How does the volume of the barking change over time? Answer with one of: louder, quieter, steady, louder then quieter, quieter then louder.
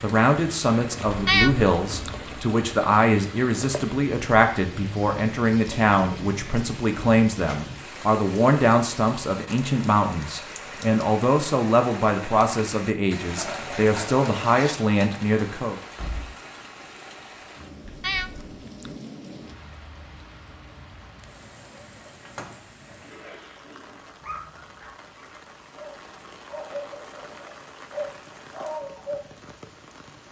quieter then louder.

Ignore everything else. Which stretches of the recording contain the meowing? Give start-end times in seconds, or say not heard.
1.1-2.2, 17.8-18.9.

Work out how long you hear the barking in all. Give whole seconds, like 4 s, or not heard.
6 s.